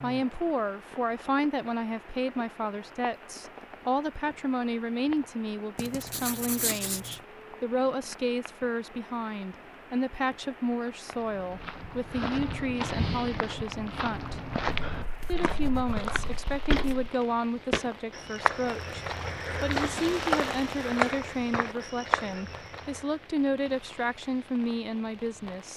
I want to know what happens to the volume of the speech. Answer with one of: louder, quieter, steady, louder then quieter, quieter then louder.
steady.